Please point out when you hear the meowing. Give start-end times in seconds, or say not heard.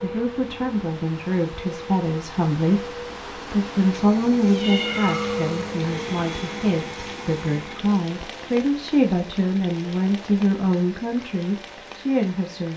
4.5-5.6.